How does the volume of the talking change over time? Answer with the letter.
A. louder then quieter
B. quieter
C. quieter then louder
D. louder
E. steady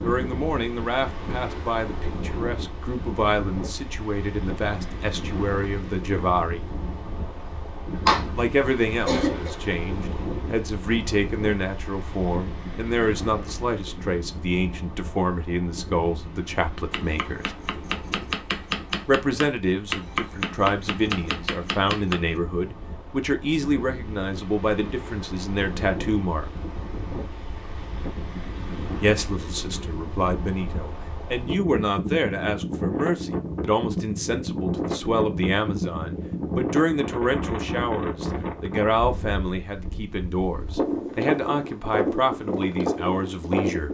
E.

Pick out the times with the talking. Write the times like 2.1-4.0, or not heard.
0.0-6.7, 8.3-17.5, 19.1-26.5, 29.0-43.8.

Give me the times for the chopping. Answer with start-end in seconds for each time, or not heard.
16.9-22.4.